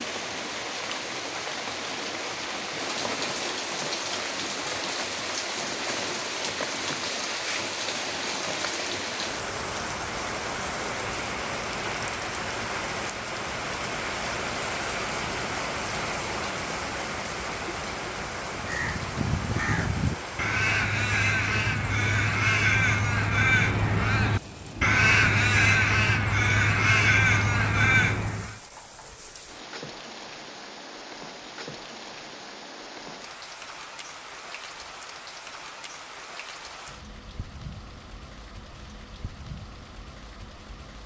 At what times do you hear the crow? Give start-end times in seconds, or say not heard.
18.5-28.6.